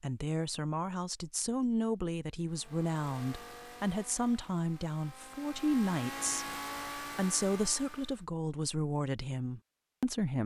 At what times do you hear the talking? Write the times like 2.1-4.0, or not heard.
0.0-10.4.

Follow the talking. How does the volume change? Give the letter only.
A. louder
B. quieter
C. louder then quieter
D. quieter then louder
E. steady
E.